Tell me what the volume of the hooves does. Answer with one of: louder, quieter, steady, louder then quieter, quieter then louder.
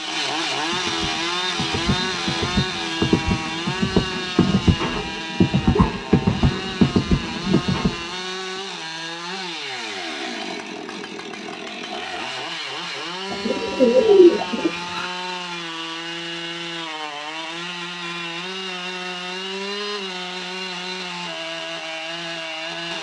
louder.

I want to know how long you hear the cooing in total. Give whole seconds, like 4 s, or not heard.
2 s.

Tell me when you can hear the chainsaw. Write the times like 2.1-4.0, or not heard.
0.0-22.9.